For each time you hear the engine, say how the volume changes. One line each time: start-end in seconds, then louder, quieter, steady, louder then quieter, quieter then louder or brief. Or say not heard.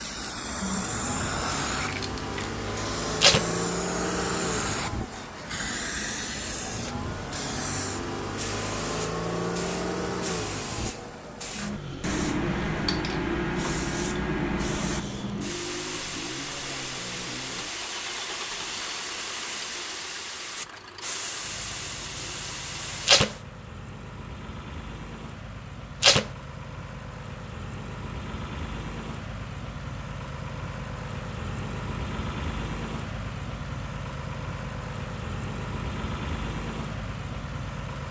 0.1-38.0 quieter then louder.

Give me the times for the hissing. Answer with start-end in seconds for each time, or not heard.
0.0-23.4.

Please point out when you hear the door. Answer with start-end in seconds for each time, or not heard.
not heard.